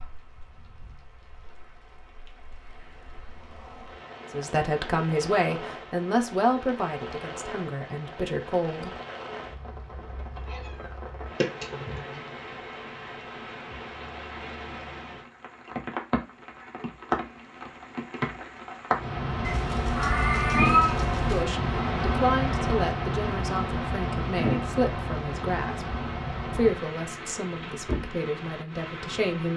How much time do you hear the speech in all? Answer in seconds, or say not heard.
13 s.